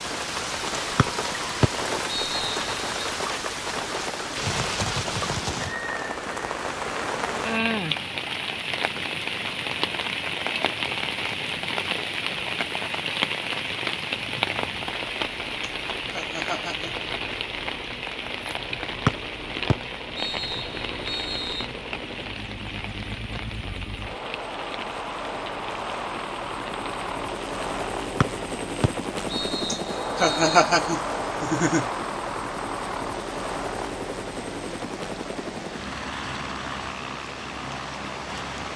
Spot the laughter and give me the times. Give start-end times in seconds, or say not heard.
15.6-16.9, 29.7-31.9.